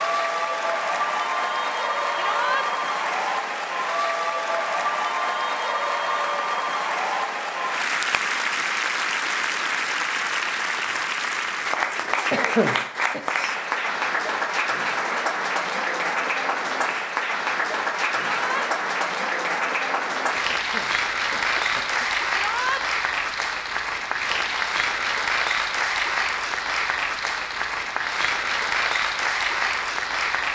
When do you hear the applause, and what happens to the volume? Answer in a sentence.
You can hear the applause from 0.0 to 30.5 s, at a steady volume.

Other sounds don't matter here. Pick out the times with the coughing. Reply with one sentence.
You can hear the coughing from 12.3 to 13.2 s and from 20.6 to 22.1 s.